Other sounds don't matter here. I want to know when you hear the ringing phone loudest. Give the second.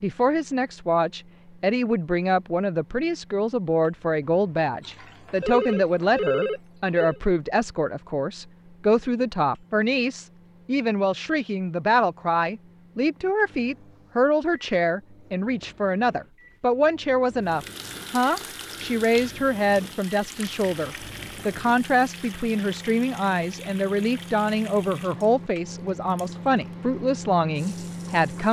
6 s.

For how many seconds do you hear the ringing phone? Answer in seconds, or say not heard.
2 s.